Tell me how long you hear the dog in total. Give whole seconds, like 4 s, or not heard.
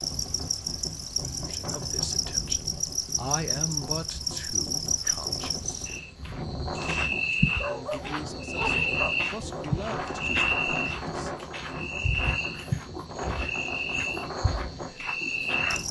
2 s.